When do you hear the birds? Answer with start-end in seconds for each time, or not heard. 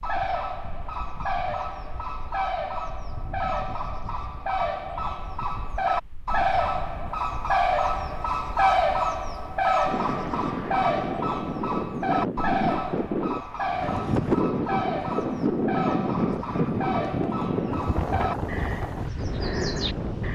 0.0-20.3.